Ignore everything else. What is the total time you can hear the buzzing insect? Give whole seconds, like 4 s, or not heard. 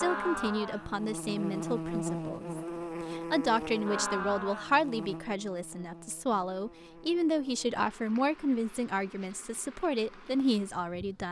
11 s.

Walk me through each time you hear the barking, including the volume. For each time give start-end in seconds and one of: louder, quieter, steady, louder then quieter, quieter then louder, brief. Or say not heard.
not heard.